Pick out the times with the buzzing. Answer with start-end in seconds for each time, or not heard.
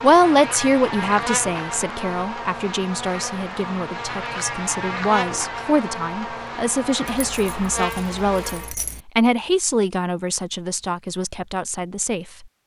0.0-8.8.